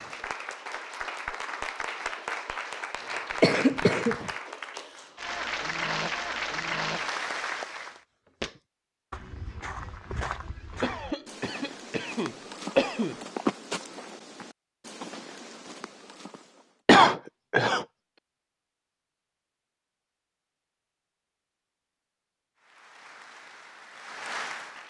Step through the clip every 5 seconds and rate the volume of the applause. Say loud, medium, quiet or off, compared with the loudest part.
loud, loud, off, off, medium.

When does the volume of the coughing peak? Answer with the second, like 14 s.
17 s.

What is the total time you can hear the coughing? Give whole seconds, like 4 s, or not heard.
4 s.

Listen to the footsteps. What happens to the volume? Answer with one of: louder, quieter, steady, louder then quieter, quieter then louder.
louder then quieter.